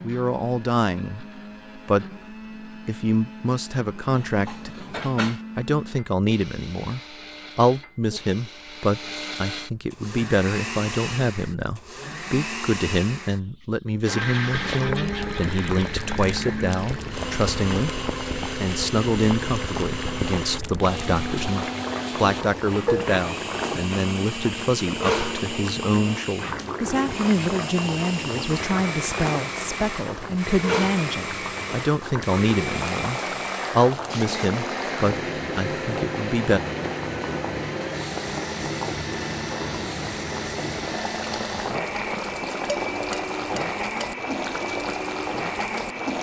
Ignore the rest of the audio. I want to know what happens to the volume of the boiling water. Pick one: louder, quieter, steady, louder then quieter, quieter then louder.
steady.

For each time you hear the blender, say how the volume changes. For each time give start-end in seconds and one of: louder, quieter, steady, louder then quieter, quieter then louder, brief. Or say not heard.
0.0-46.1 louder.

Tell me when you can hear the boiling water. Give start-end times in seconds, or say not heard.
14.4-46.1.